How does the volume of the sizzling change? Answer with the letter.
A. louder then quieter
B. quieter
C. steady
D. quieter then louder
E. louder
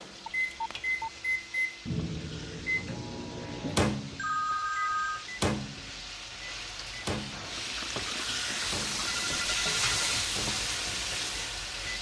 E.